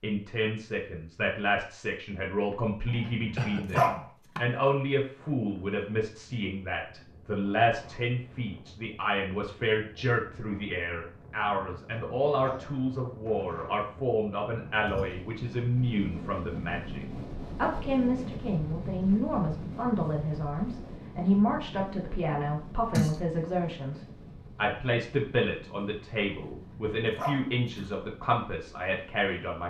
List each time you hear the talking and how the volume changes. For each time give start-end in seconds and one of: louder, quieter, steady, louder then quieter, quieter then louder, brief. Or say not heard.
0.0-29.6 steady.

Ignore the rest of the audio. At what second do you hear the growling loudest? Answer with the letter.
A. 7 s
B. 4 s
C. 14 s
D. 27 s
B.